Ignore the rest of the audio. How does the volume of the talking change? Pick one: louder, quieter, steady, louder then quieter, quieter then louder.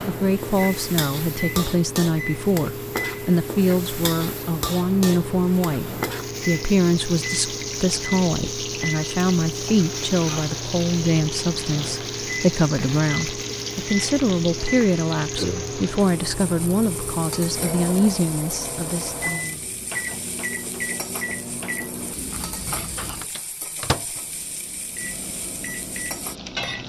steady.